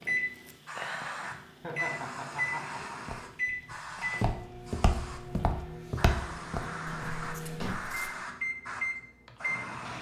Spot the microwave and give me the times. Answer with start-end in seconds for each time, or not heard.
0.0-9.9.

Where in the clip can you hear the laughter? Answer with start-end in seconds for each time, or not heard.
1.6-3.0.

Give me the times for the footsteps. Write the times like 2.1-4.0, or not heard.
3.0-8.2.